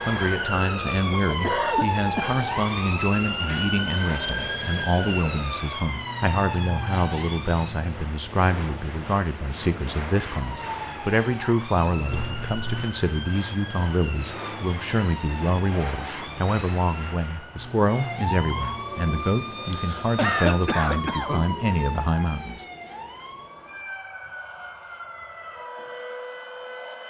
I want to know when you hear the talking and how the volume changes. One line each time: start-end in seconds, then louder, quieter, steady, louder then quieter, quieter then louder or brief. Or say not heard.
0.1-22.6 steady.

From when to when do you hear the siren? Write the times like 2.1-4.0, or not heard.
0.0-7.9, 10.2-27.0.